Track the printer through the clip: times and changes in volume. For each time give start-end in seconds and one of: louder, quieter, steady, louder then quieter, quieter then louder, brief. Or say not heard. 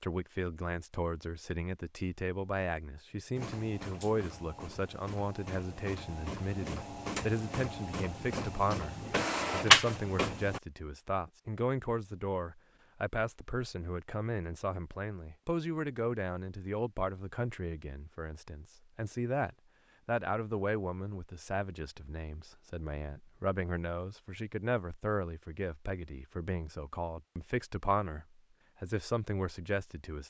3.4-10.6 louder.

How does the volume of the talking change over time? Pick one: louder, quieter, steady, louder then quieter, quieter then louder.
steady.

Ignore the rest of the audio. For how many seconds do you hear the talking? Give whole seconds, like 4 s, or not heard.
30 s.